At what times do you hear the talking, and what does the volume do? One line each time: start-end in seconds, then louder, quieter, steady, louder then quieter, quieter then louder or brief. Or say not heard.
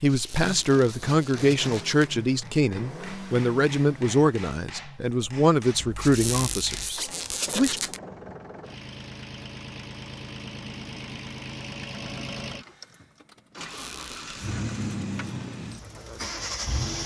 0.0-7.8 steady.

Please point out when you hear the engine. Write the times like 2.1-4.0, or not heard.
0.1-17.0.